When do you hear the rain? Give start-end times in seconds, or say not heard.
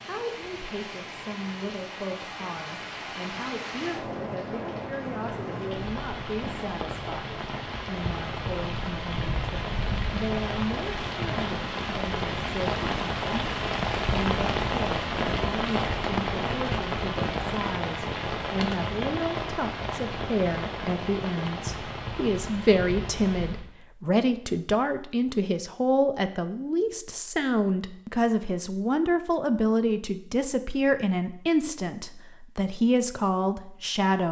0.0-23.7.